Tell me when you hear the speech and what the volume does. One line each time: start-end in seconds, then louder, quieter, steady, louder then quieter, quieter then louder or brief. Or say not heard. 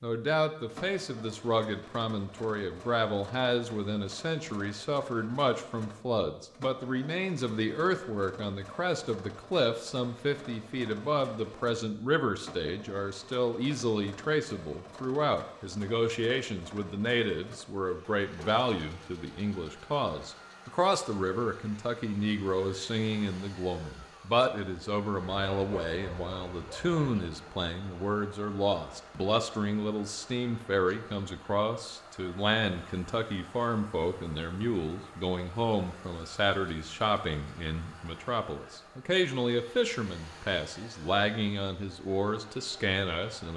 0.0-43.5 steady.